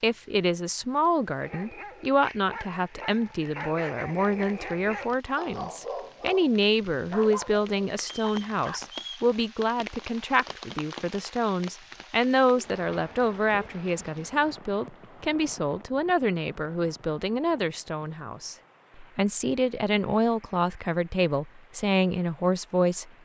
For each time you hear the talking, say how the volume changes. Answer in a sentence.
You can hear the talking from 0.0 to 23.1 s, at a steady volume.